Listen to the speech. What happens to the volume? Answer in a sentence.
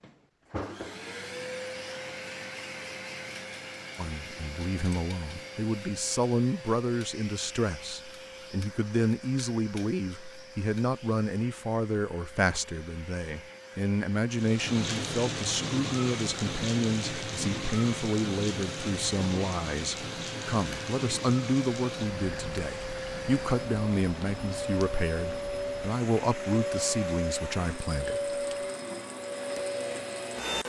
The loudness of the speech stays about the same.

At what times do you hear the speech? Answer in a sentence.
The speech can be heard from 4.0 to 28.3 s.